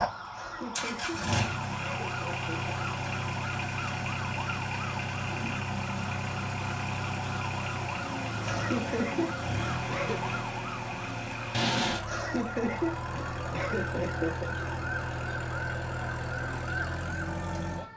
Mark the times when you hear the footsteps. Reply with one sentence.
The footsteps can't be heard in this clip.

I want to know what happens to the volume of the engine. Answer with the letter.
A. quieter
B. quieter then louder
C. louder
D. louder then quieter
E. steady
E.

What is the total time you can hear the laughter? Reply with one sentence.
You can hear the laughter for 7 seconds altogether.